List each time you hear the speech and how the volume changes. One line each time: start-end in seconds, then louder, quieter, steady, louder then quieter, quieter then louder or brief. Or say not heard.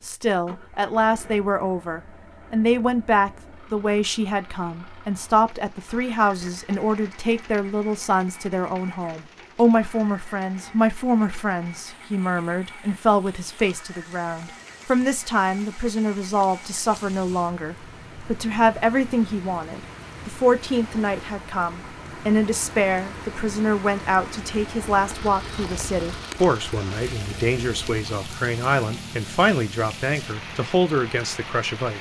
0.0-31.9 steady.